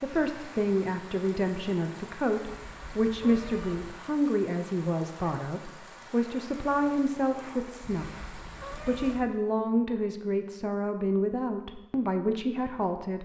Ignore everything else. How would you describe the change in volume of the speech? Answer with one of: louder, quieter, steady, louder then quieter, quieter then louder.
steady.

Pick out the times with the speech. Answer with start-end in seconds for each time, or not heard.
0.0-13.2.